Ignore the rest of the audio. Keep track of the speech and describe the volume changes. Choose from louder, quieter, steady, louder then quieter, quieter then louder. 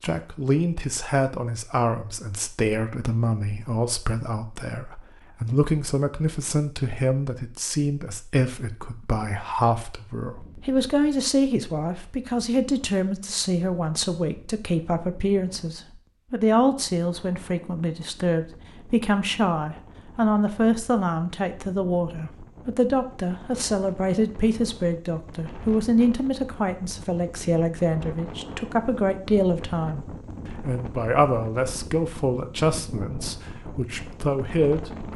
steady.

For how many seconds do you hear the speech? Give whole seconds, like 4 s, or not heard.
35 s.